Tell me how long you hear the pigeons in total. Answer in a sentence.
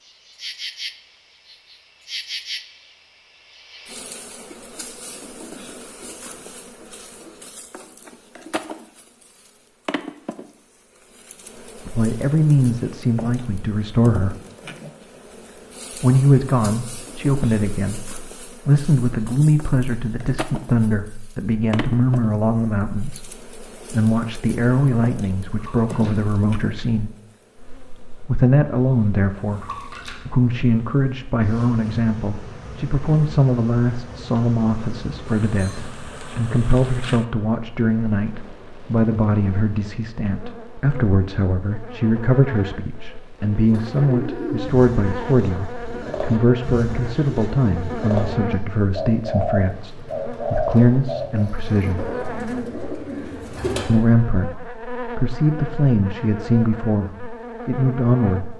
You can hear the pigeons for 10 seconds altogether.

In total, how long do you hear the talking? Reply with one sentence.
You can hear the talking for 42 seconds altogether.